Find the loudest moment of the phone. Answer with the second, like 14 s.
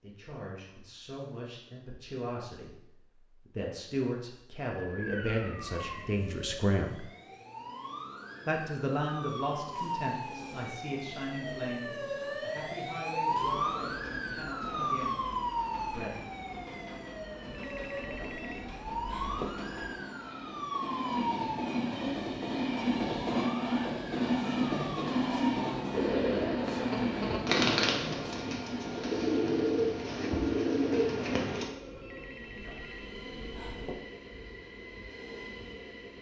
19 s.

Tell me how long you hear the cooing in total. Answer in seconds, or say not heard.
6 s.